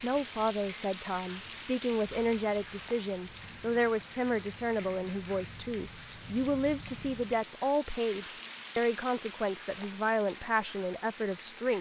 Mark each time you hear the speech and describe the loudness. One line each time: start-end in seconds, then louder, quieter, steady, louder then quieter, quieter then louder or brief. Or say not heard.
0.0-11.7 steady.